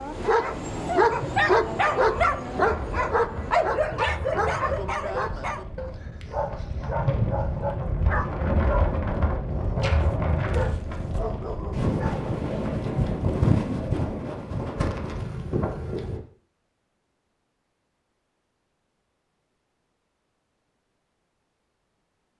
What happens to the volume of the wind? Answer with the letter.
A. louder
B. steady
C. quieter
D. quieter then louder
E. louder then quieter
A.